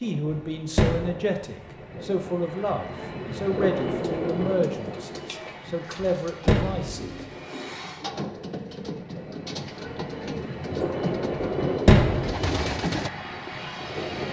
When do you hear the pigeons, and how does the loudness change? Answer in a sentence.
You can hear the pigeons from 4.0 to 13.1 s, getting louder.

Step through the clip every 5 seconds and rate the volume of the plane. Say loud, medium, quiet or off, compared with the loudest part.
loud, medium, loud.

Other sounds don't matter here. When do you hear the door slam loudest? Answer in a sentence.
The volume of the door slam peaks at 12 seconds.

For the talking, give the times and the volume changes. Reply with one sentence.
The talking can be heard from 0.0 to 7.2 s, at a steady volume.